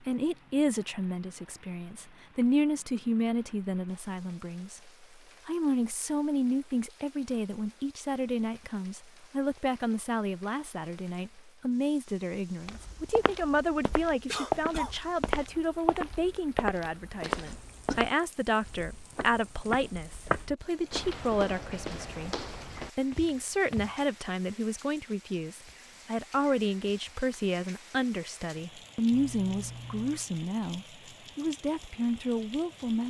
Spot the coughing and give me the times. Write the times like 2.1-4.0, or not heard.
14.3-14.9, 17.2-18.1.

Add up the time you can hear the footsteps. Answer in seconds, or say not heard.
11 s.